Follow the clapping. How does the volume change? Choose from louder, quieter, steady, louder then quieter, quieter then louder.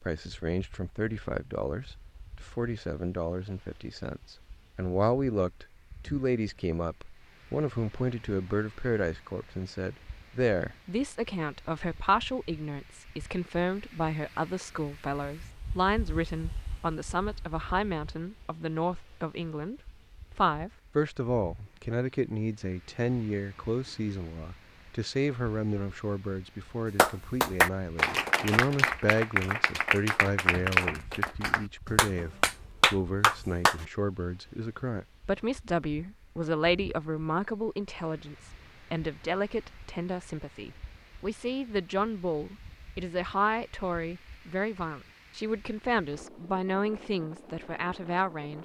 quieter then louder.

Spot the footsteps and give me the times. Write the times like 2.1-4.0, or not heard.
not heard.